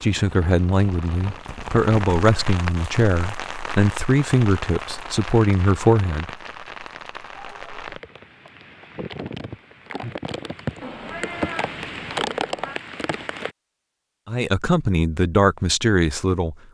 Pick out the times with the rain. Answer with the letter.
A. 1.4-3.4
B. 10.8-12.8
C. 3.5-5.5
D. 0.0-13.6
D.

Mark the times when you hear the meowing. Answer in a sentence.
The meowing can be heard from 10.8 to 12.8 s.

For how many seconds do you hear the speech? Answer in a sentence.
The speech can be heard for 9 seconds in total.